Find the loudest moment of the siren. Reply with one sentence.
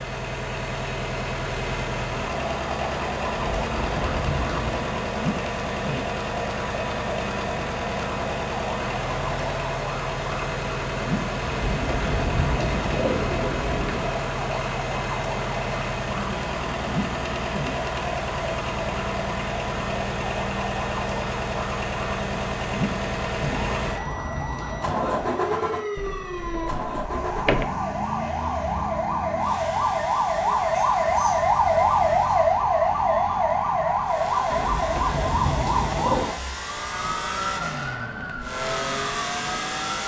The volume of the siren peaks at 32 seconds.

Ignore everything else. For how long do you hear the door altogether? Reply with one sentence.
You can hear the door for 2 seconds altogether.